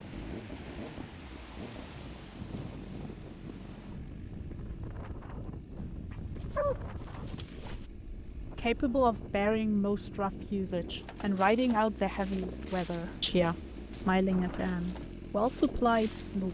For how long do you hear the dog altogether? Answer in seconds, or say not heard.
2 s.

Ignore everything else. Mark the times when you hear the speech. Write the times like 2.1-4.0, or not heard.
8.6-16.4.